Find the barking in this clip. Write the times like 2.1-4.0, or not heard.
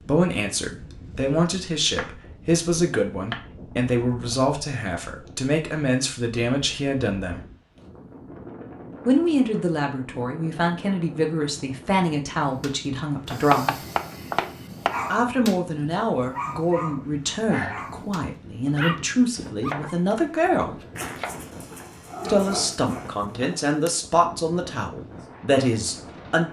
12.4-15.6, 16.3-23.9.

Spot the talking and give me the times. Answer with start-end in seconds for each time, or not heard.
0.0-7.4, 9.1-13.8, 15.1-20.8, 22.2-26.4.